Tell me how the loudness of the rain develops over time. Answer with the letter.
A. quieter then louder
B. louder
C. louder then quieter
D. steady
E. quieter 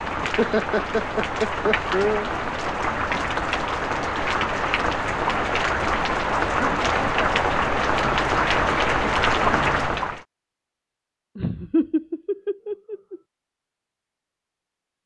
B.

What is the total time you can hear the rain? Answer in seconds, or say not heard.
10 s.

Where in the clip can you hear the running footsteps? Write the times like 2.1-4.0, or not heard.
not heard.